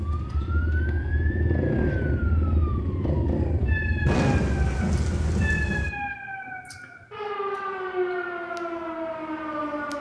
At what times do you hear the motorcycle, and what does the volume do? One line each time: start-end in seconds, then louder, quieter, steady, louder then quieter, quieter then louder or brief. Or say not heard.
0.0-5.8 louder then quieter.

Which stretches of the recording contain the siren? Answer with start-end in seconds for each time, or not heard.
0.0-9.9.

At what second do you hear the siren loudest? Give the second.
8 s.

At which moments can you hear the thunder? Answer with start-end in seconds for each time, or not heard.
4.0-5.9.